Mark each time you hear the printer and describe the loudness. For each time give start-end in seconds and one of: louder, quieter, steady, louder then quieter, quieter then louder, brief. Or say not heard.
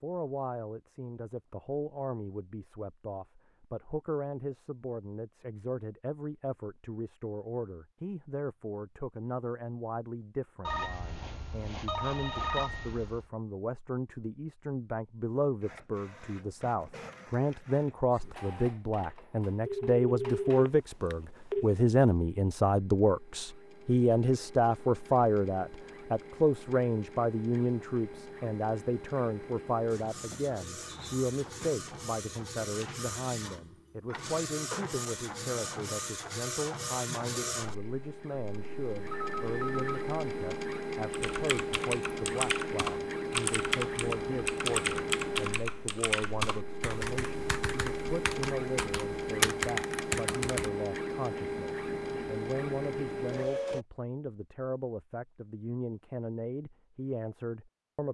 15.6-53.9 louder.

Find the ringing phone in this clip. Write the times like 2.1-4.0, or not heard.
10.7-13.2, 19.6-21.6, 39.1-40.0.